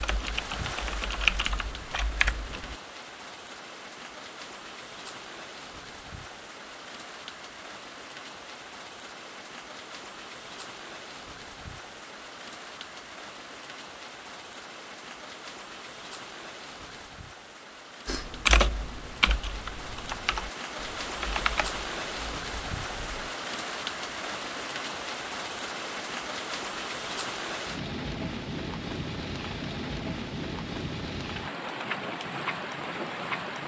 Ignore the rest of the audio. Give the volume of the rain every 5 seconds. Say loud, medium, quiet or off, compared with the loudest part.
medium, medium, medium, medium, loud, loud, loud.